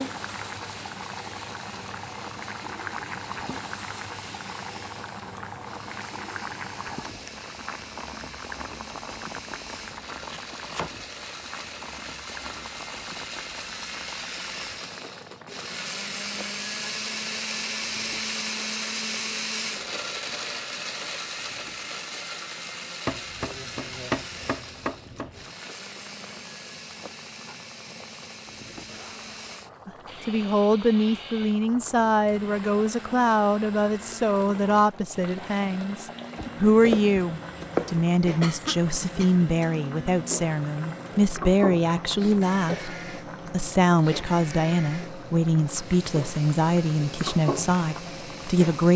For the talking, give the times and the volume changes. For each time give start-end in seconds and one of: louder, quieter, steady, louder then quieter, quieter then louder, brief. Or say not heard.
29.9-48.9 steady.